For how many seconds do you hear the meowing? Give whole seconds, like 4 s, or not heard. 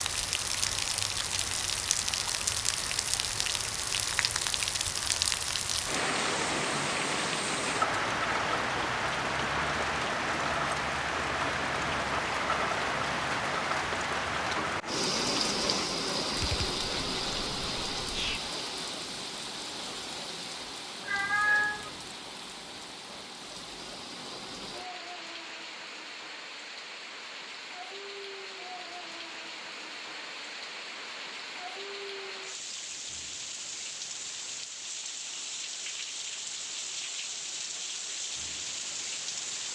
3 s.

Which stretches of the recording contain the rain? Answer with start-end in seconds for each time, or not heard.
0.0-39.7.